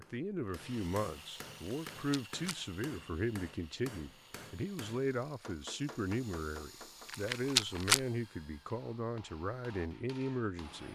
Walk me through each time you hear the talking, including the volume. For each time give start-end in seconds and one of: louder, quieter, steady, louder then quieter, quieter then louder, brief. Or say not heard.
0.0-10.9 steady.